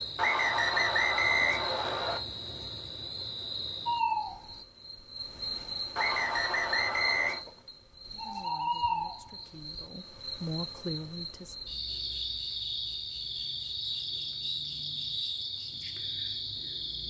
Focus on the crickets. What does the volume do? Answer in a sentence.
The volume of the crickets stays about the same.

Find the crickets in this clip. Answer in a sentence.
The crickets can be heard from 0.0 to 17.0 s.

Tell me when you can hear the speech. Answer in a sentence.
You can hear the speech from 8.1 to 11.6 s.